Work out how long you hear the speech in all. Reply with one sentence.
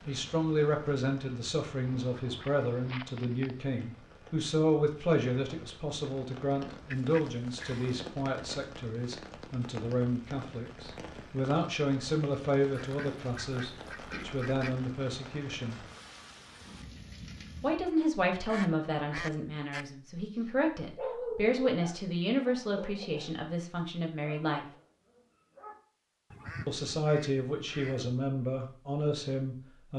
The speech can be heard for 26 seconds in total.